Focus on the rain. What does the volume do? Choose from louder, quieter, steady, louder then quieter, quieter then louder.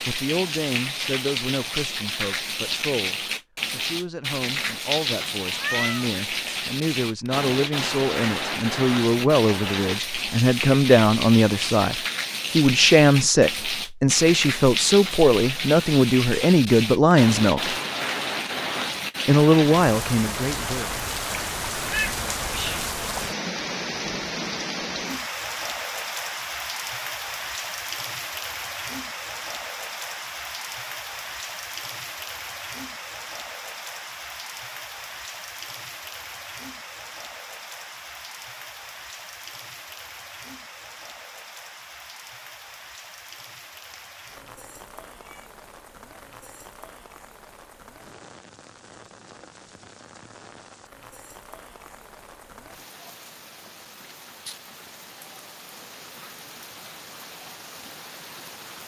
quieter.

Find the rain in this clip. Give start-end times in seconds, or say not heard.
0.0-58.8.